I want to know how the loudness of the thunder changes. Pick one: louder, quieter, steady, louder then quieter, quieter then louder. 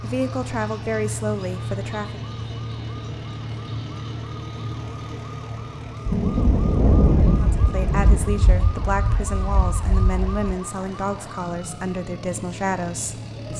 quieter.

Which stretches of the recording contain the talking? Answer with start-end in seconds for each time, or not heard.
0.0-2.2, 7.5-13.5.